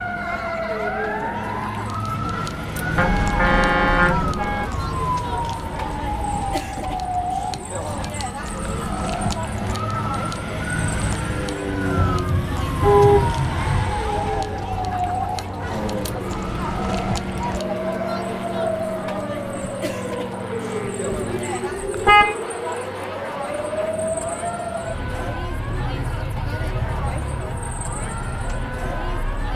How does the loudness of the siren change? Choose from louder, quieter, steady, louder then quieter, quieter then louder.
steady.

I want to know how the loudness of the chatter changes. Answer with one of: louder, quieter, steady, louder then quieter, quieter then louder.
steady.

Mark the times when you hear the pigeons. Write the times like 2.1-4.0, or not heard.
not heard.